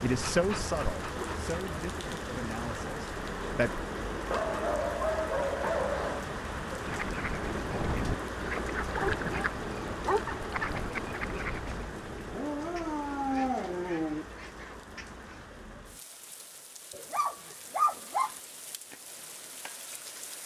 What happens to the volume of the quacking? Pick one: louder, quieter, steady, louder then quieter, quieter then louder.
quieter.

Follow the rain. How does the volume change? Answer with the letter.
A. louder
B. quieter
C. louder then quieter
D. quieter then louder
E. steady
B.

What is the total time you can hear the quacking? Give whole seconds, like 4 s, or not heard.
9 s.